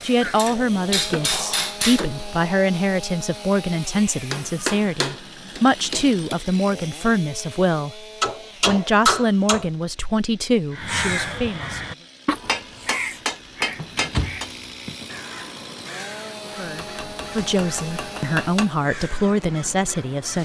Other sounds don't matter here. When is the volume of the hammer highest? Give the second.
9 s.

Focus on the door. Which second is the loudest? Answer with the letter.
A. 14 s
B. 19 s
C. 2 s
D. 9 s
A.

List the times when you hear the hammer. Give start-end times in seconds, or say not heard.
0.2-2.0, 4.3-6.3, 8.2-9.7, 12.4-14.5, 16.8-18.7.